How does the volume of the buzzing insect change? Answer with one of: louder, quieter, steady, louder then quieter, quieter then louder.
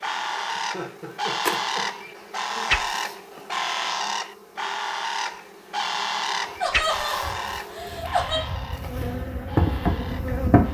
quieter then louder.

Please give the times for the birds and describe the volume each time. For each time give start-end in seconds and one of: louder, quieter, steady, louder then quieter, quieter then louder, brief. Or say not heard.
0.0-10.7 quieter.